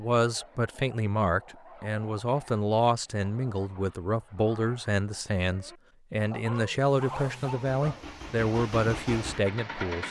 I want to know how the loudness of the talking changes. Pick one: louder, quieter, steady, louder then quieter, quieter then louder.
steady.